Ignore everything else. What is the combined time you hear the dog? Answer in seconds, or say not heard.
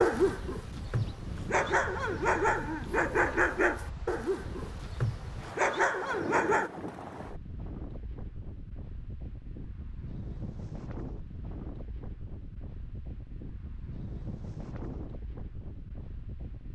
7 s.